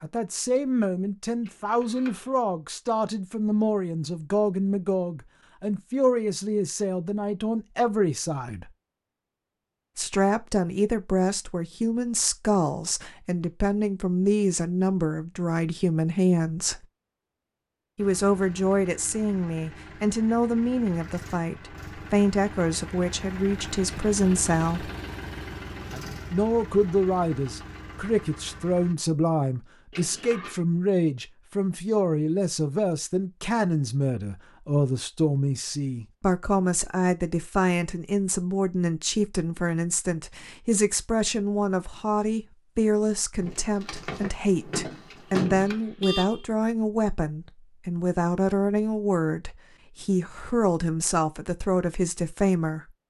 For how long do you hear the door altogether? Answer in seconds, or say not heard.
2 s.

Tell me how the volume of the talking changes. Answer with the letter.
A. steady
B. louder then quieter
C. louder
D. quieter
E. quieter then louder
A.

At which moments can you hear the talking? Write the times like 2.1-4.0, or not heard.
0.0-8.7, 9.9-16.8, 17.9-24.9, 26.3-52.9.